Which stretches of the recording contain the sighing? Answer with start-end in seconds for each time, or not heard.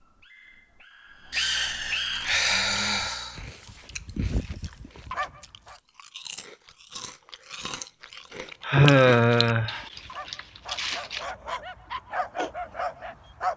1.3-3.4, 8.7-9.8.